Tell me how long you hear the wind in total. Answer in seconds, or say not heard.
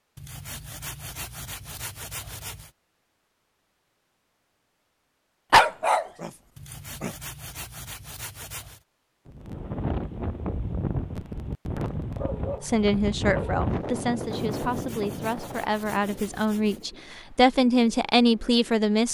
10 s.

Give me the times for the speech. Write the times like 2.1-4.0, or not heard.
12.6-19.0.